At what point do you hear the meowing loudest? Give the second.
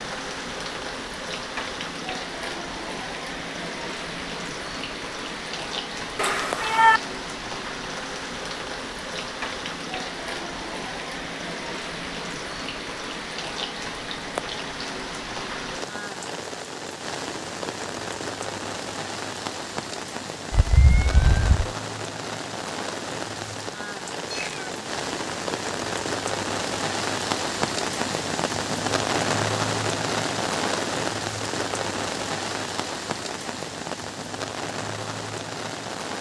7 s.